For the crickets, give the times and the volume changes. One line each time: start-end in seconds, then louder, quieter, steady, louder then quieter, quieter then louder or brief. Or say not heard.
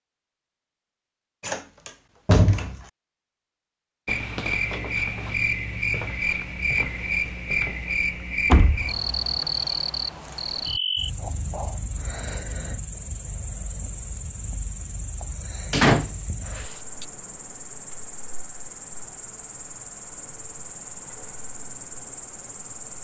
4.0-22.9 quieter.